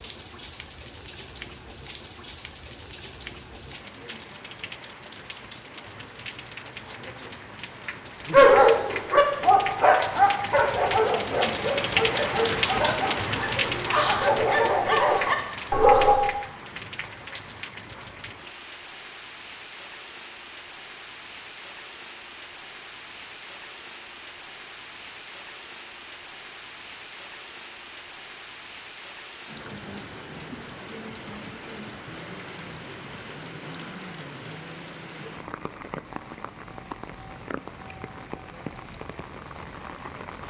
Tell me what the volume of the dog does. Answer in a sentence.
The loudness of the dog goes down, then up.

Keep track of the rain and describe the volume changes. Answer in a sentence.
The volume of the rain goes up, then down.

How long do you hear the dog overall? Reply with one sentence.
The dog can be heard for 8 seconds in total.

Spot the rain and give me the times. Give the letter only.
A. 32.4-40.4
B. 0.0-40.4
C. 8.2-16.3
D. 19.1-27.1
B.